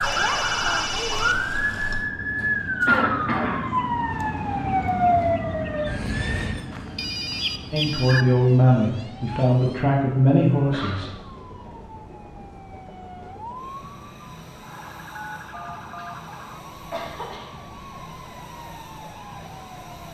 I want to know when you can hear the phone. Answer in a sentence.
You can hear the phone from 0.0 to 2.1 s, from 6.7 to 8.2 s and from 15.2 to 16.1 s.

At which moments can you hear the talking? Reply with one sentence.
The talking can be heard from 7.7 to 11.1 s.